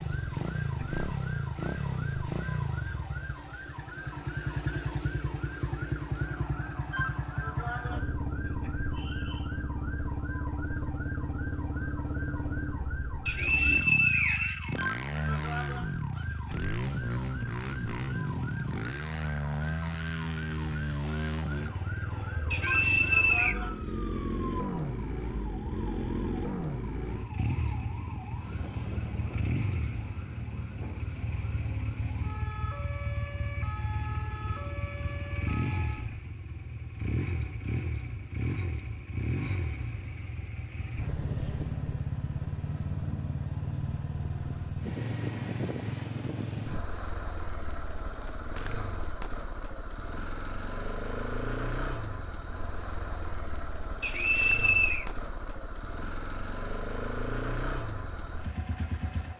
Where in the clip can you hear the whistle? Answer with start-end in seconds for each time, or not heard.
13.2-14.8, 22.5-23.6, 54.0-55.0.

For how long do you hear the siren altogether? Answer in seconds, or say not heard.
36 s.